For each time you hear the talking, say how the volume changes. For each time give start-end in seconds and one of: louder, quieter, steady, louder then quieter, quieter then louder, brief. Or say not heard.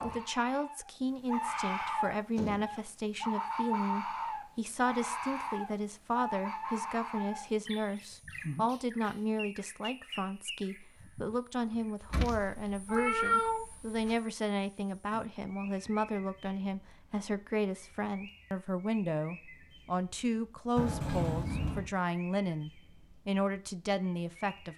0.0-24.7 steady.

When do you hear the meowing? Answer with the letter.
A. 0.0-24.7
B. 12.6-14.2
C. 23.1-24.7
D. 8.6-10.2
B.